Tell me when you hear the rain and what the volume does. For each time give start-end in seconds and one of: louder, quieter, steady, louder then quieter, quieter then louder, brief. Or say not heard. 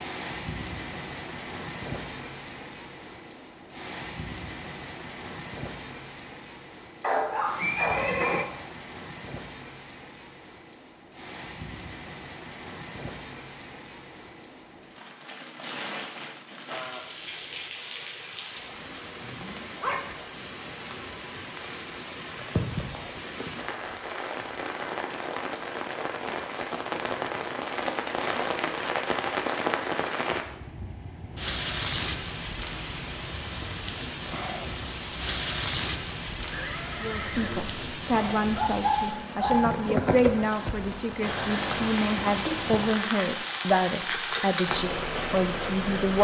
0.0-46.1 louder.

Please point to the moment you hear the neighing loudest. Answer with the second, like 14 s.
8 s.